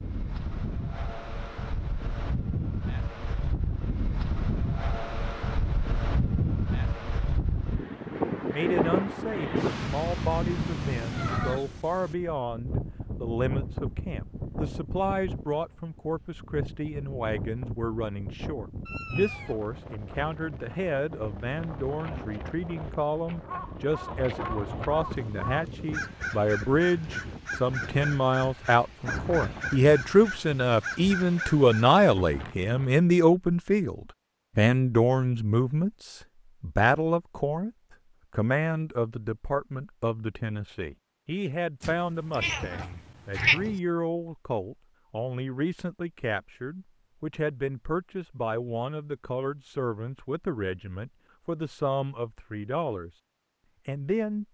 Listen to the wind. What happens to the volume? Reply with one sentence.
The loudness of the wind goes down.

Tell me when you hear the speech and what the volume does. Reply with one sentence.
You can hear the speech from 8.5 to 53.1 s, getting louder then quieter; and briefly from 53.9 to 54.5 s.